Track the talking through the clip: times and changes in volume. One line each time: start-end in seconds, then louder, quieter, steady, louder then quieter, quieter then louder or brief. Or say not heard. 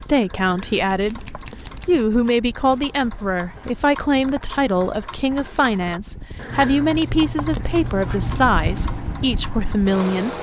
0.0-10.3 steady.